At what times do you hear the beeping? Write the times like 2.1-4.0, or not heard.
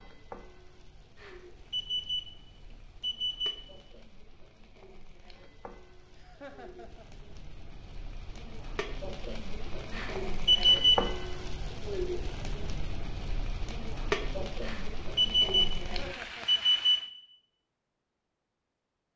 1.2-2.4, 3.0-3.6, 9.9-11.1, 14.6-15.8, 16.4-17.1.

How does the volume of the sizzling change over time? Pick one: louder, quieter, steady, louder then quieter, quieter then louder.
louder.